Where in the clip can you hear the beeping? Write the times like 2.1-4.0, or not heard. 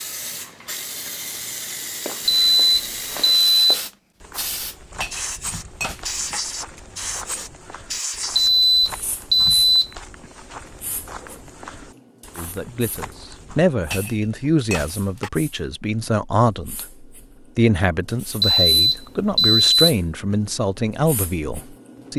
2.2-3.8, 8.3-9.9, 18.4-19.9.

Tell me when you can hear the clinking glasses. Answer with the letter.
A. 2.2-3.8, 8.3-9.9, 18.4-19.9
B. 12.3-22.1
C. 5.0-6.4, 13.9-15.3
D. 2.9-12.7
C.